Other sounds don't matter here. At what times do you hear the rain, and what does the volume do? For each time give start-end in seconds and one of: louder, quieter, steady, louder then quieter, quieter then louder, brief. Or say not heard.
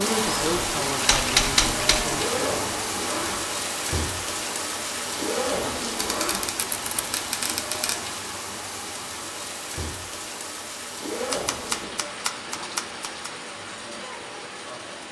0.0-15.0 quieter.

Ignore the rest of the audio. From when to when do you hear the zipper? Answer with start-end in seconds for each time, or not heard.
2.1-3.4, 5.2-6.5, 11.0-12.0.